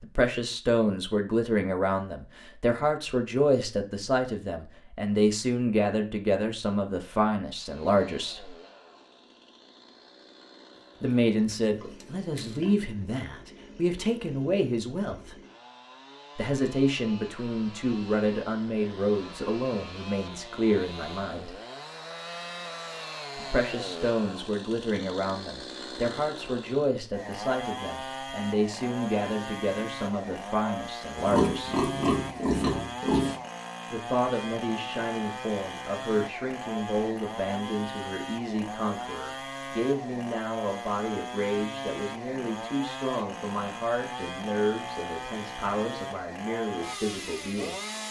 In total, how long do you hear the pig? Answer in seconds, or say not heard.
4 s.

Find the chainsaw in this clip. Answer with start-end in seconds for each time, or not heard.
7.5-48.0.